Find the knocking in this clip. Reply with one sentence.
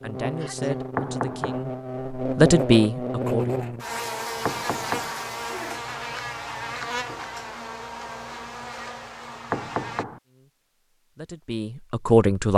The knocking can be heard from 0.9 to 1.6 s, from 4.5 to 5.2 s and from 9.5 to 10.2 s.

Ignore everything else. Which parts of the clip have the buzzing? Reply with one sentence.
The buzzing can be heard from 0.0 to 10.1 s.